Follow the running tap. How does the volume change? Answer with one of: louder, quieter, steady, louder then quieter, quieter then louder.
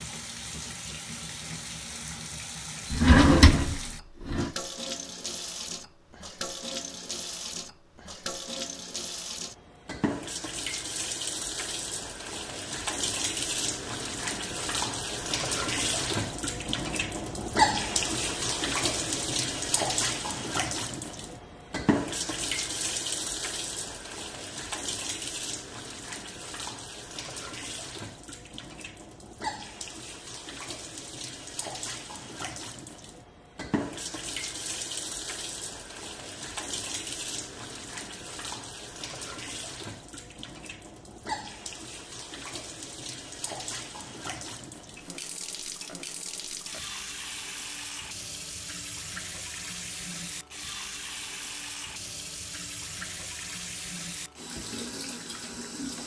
louder then quieter.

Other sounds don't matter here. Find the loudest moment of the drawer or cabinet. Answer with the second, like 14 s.
3 s.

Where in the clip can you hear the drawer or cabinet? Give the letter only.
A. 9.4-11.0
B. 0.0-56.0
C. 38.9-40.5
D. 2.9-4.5
D.